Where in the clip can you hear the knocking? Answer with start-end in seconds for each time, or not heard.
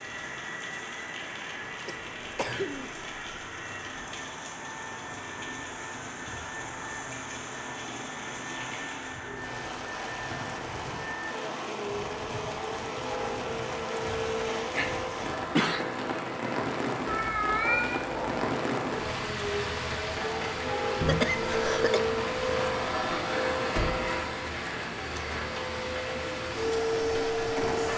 not heard.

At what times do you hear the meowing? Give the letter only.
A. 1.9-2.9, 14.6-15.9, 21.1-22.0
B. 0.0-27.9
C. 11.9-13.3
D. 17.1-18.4
D.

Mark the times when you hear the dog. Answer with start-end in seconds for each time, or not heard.
not heard.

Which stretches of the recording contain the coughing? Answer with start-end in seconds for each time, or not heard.
1.9-2.9, 14.6-15.9, 21.1-22.0.